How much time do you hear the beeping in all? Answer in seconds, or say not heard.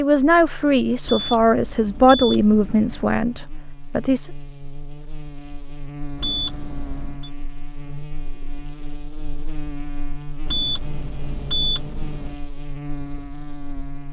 5 s.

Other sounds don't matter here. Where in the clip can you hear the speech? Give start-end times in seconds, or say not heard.
0.0-4.3.